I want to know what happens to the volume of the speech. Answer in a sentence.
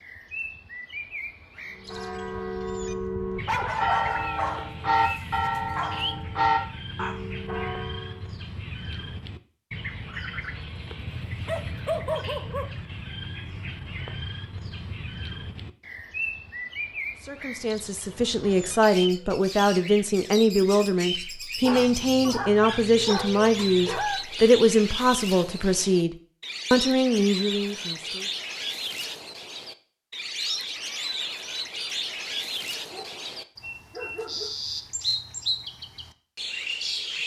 The volume of the speech stays about the same.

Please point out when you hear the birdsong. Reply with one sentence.
The birdsong can be heard from 0.0 to 37.2 s.